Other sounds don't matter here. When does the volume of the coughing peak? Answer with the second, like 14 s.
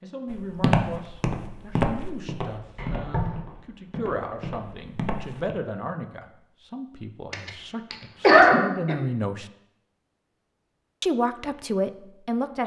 8 s.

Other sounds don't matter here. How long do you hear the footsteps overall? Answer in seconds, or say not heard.
5 s.